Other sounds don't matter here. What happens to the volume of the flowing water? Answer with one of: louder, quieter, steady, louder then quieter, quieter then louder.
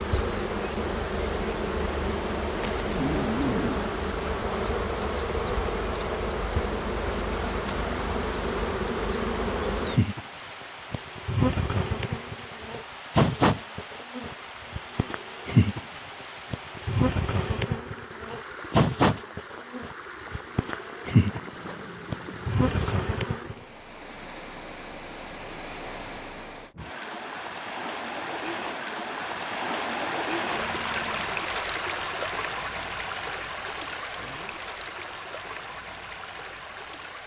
louder.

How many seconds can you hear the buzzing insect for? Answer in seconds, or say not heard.
24 s.